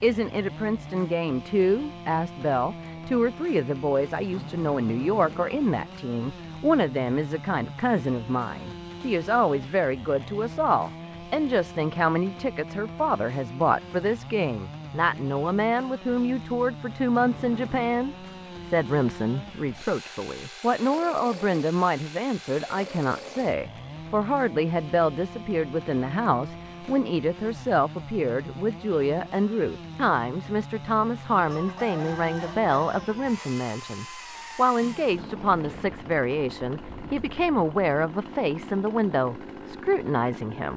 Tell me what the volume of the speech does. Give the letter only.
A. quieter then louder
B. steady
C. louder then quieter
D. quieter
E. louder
B.